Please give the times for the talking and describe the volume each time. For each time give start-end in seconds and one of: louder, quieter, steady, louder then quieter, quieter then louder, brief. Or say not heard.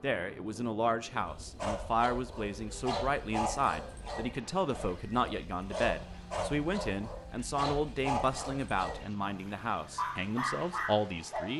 0.0-11.5 steady.